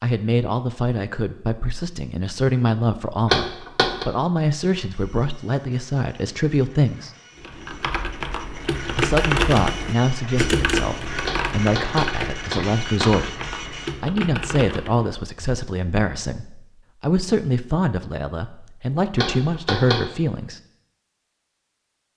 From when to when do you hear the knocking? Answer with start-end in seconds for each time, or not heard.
3.2-4.0, 11.2-13.2, 19.1-20.1.